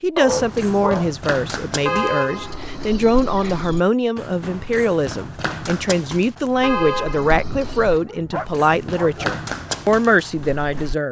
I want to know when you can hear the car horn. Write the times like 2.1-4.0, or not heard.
1.9-3.8, 6.6-8.1.